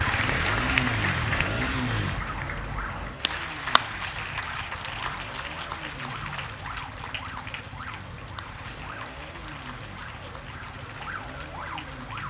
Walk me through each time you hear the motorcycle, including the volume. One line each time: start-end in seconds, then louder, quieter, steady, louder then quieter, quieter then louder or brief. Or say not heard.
0.0-12.2 quieter.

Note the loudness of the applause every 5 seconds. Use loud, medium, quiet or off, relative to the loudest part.
loud, medium, quiet.